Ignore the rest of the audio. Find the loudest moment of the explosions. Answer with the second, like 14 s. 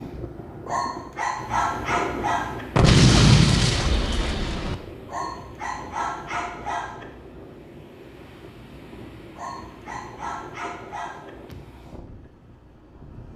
3 s.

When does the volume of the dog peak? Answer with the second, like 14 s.
2 s.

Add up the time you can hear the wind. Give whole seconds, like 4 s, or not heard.
13 s.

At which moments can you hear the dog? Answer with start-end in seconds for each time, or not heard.
0.7-2.6, 5.0-7.0, 9.3-11.3.